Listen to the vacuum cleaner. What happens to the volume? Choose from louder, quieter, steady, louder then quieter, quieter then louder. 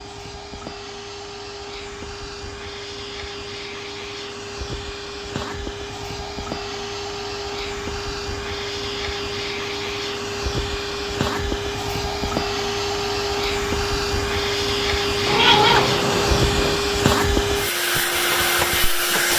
louder.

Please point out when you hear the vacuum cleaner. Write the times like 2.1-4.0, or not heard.
0.0-19.3.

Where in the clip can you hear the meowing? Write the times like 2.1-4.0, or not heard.
15.2-16.8.